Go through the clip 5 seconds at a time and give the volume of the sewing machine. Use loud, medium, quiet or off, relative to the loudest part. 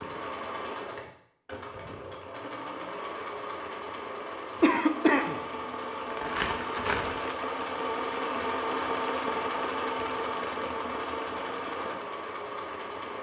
medium, loud, loud.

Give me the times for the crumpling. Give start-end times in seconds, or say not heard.
6.1-7.3.